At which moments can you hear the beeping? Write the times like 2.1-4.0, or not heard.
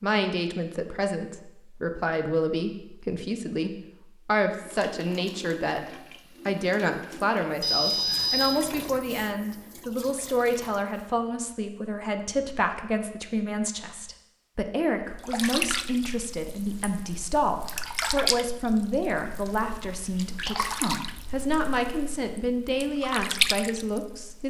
7.6-8.6.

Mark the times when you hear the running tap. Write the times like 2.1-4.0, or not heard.
4.5-11.2, 15.1-24.4.